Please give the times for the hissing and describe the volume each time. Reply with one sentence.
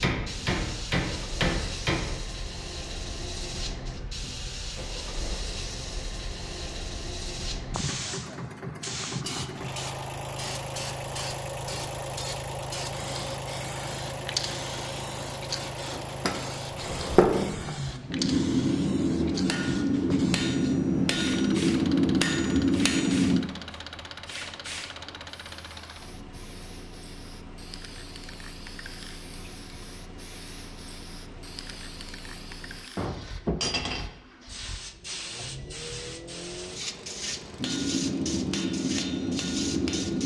The hissing can be heard from 0.1 to 40.2 s, getting quieter then louder.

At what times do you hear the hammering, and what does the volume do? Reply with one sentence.
You can hear the hammering briefly from 0.0 to 2.2 s; from 15.9 to 23.4 s, at a steady volume; and briefly from 37.5 to 40.2 s.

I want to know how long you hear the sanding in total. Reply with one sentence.
The sanding can't be heard in this clip.